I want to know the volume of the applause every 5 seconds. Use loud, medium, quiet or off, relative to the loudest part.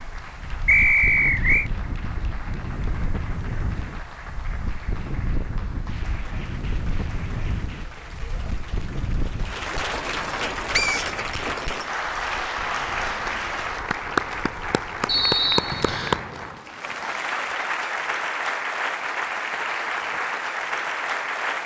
quiet, medium, loud, loud, loud.